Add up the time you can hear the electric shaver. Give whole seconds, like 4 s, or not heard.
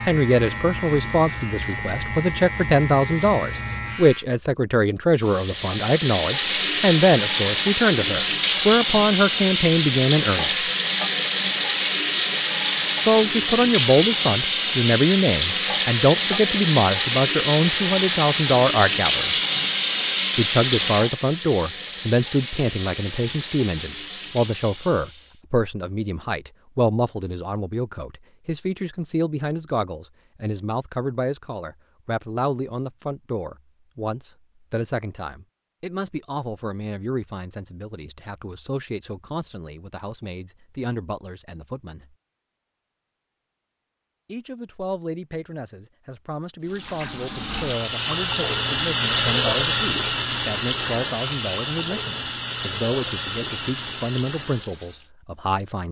4 s.